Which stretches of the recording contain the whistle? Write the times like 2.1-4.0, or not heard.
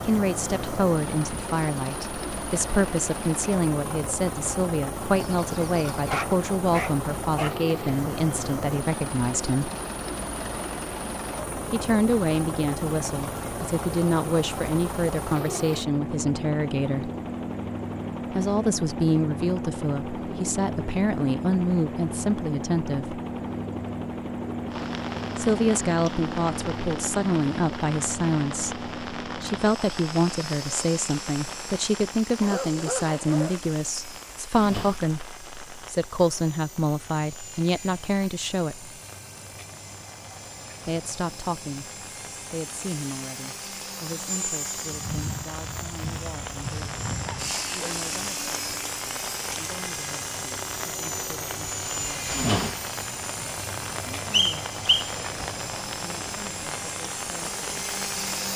54.3-55.1.